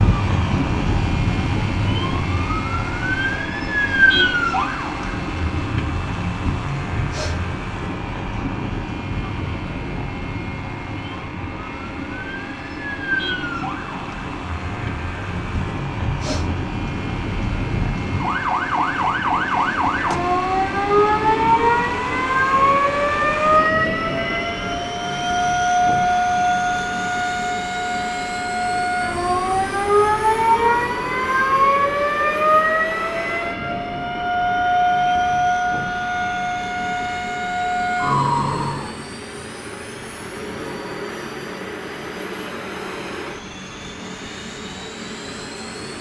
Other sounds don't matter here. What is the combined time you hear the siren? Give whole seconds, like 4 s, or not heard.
39 s.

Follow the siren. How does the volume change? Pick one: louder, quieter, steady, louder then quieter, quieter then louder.
quieter then louder.